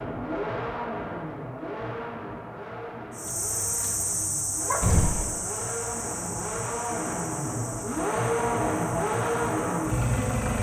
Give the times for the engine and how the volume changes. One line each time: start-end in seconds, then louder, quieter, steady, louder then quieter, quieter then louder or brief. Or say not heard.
0.0-10.5 quieter then louder.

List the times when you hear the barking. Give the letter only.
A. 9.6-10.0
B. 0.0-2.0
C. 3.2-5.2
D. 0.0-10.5
C.